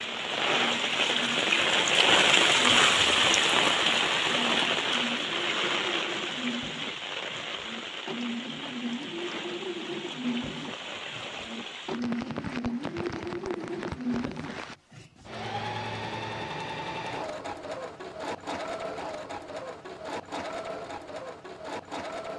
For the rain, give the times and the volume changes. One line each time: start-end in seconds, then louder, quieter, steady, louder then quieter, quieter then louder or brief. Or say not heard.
0.0-14.8 quieter.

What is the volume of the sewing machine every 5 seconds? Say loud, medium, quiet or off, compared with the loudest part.
medium, loud, loud, loud, loud.